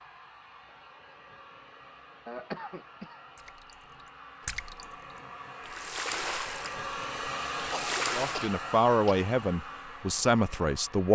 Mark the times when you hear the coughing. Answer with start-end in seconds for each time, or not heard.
2.2-3.2, 7.7-9.2.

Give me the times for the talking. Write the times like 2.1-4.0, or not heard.
8.2-11.1.